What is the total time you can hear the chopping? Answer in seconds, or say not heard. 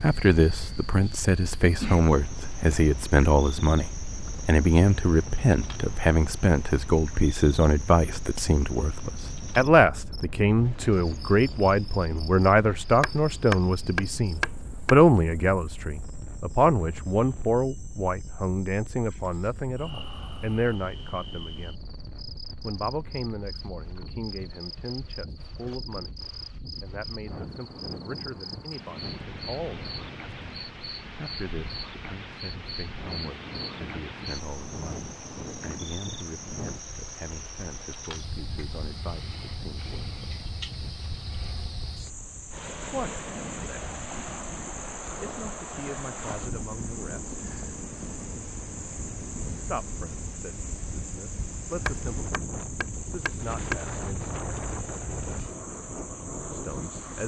4 s.